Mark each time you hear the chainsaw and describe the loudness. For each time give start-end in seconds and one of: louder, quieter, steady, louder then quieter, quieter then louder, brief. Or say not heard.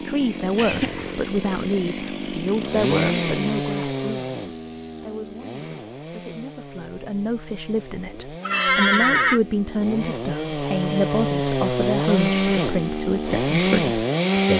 0.0-14.5 quieter then louder.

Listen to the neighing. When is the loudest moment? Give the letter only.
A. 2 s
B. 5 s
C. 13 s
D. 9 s
D.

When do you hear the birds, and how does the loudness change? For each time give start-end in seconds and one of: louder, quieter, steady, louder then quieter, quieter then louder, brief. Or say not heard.
not heard.